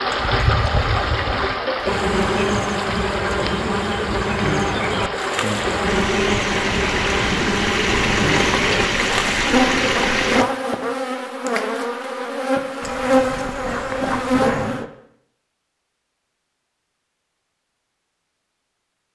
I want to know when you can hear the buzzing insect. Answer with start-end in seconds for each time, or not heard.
0.0-14.8.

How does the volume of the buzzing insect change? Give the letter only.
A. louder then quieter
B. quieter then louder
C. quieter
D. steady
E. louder
D.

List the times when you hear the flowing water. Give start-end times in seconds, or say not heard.
0.0-10.4.